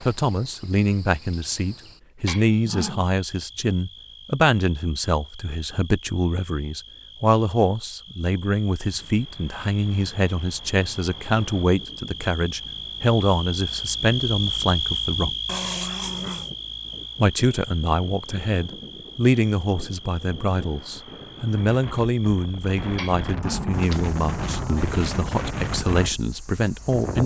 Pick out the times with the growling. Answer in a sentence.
You can hear the growling from 2.2 to 3.0 s, from 15.4 to 16.5 s and from 22.9 to 25.3 s.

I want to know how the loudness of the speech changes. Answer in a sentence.
The volume of the speech stays about the same.